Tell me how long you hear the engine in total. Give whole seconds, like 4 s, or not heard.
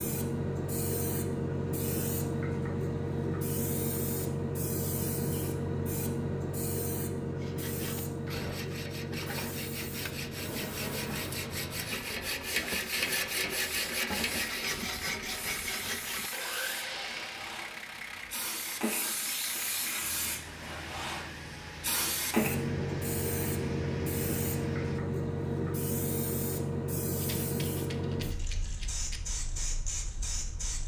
16 s.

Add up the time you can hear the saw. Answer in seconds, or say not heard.
10 s.